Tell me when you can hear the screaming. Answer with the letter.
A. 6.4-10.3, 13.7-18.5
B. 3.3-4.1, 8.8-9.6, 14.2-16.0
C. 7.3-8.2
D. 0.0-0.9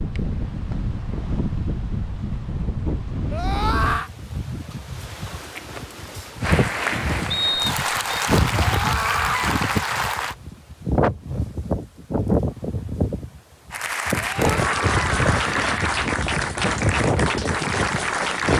B.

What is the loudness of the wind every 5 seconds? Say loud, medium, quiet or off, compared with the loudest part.
medium, loud, loud, loud.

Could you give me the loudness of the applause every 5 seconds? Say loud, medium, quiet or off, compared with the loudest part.
off, loud, loud, loud.